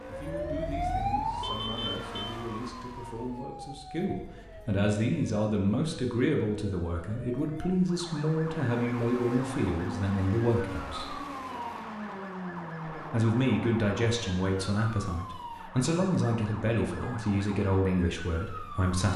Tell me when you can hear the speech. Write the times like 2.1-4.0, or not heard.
0.1-11.2, 12.9-19.1.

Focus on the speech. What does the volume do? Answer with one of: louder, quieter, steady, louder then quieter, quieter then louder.
louder.